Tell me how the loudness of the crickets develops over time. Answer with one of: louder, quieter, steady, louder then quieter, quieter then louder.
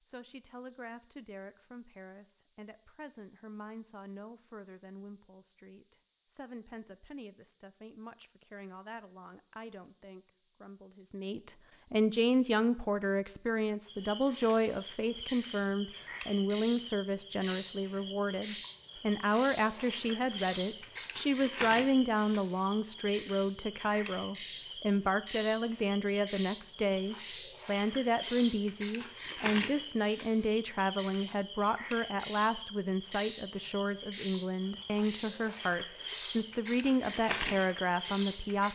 steady.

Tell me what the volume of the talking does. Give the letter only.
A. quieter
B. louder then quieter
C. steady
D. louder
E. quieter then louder
D.